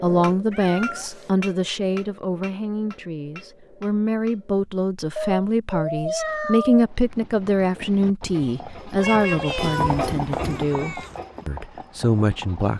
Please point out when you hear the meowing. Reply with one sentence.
You can hear the meowing from 0.5 to 1.3 s, from 5.2 to 6.8 s and from 9.0 to 11.2 s.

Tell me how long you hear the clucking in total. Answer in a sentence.
The clucking can't be heard in this clip.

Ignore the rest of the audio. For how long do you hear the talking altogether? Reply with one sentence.
The talking can be heard for 13 seconds in total.